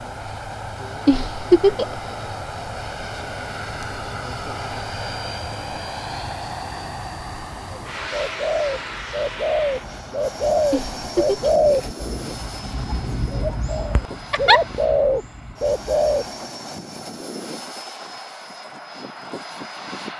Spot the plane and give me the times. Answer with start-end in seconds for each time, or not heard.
0.0-20.1.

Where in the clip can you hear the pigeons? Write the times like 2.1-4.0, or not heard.
7.7-16.3.